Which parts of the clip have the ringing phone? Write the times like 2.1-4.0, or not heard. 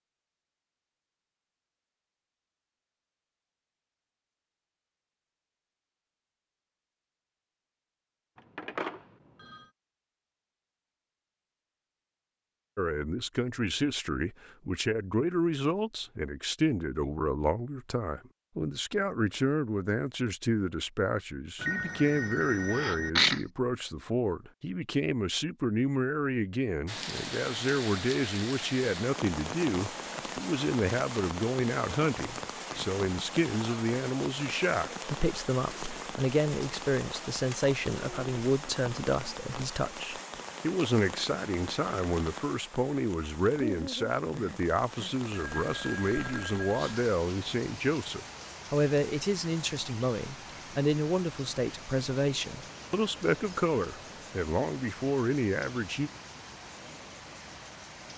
8.3-9.7, 21.6-23.1, 45.4-47.0.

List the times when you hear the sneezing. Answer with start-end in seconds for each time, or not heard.
22.7-23.4.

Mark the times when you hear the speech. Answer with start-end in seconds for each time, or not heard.
12.8-56.1.